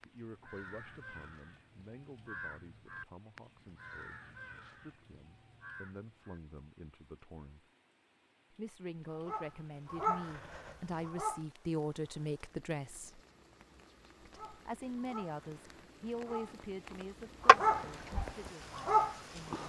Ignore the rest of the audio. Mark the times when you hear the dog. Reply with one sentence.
You can hear the dog from 9.2 to 11.4 s and from 14.3 to 19.6 s.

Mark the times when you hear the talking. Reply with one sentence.
You can hear the talking from 0.0 to 7.7 s, from 8.5 to 13.2 s and from 14.2 to 19.6 s.